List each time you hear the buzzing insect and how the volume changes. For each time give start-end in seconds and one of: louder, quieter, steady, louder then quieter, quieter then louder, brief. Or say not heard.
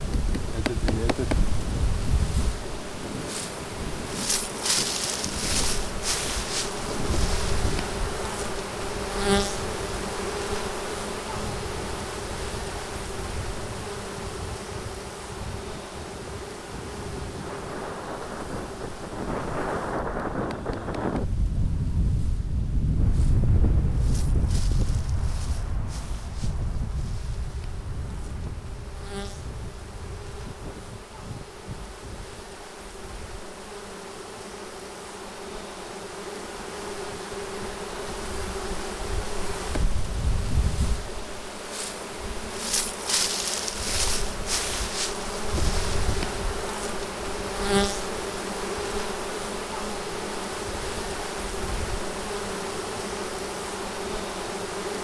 0.0-54.9 quieter then louder.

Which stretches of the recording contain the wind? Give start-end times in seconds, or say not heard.
0.0-32.5.